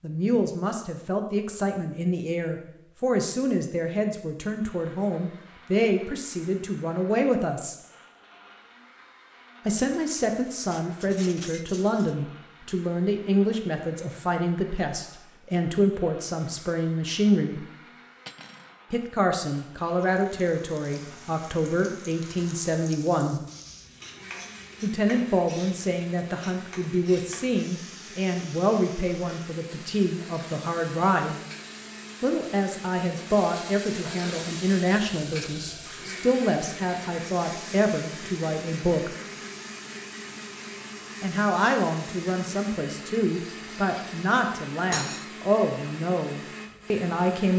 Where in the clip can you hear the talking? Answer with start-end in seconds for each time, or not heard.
0.0-7.8, 9.7-17.6, 18.9-23.4, 24.8-31.4, 32.2-39.1, 41.2-47.5.